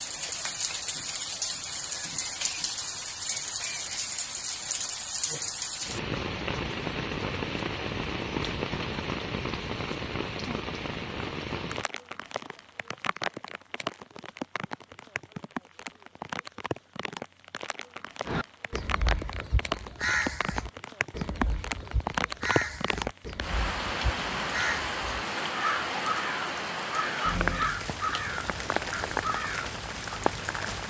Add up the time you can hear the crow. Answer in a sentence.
You can hear the crow for 12 seconds altogether.